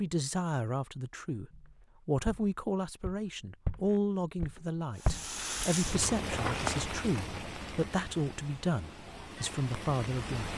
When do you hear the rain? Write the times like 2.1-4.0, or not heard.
5.0-10.5.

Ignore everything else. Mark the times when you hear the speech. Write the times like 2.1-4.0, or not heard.
0.0-10.5.